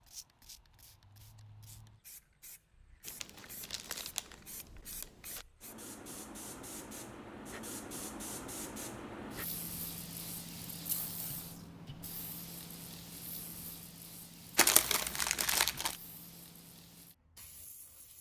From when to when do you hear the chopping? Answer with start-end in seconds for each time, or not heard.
not heard.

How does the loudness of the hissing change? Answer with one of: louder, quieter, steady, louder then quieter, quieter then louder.
louder then quieter.